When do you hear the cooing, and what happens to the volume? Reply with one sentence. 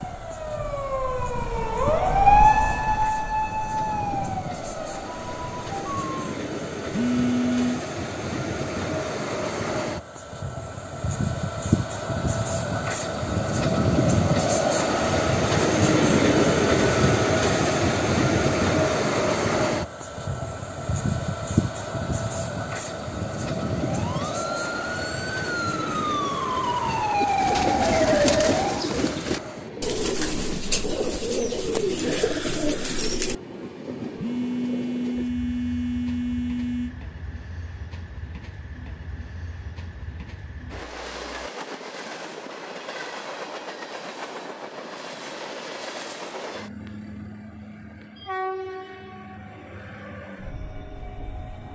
The cooing can be heard from 27.1 to 33.4 s, at a steady volume.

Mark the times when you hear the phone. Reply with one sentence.
You can hear the phone from 6.9 to 7.8 s and from 34.1 to 37.0 s.